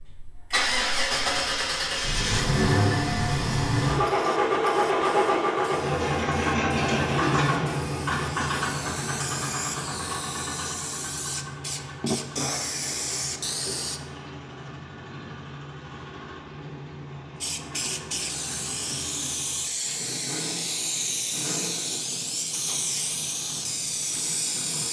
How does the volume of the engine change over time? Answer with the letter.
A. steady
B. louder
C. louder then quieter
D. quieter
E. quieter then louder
D.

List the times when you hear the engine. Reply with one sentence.
The engine can be heard from 0.0 to 24.8 s.